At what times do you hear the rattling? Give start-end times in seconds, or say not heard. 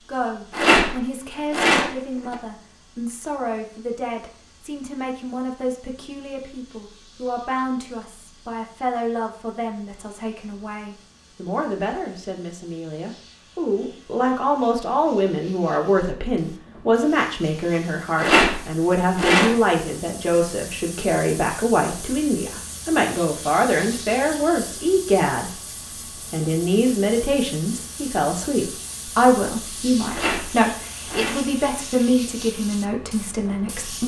0.5-2.4, 18.1-19.6, 30.1-31.4.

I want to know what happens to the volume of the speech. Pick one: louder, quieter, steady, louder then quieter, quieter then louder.
louder.